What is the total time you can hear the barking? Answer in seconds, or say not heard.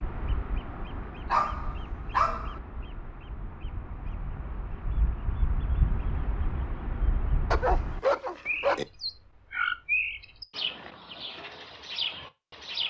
3 s.